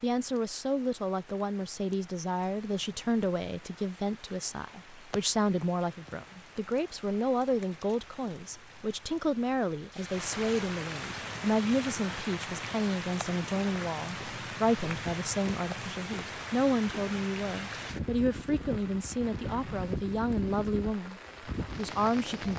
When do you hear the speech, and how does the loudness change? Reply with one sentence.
You can hear the speech from 0.0 to 22.5 s, at a steady volume.